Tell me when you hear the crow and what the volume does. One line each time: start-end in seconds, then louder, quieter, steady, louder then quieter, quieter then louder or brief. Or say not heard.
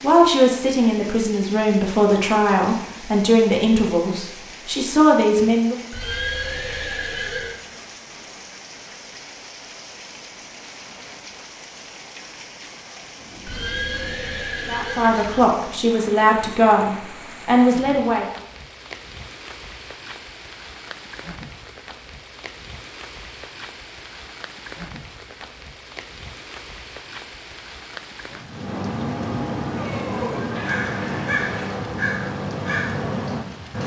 28.5-33.8 steady.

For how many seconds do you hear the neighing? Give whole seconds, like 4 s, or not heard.
6 s.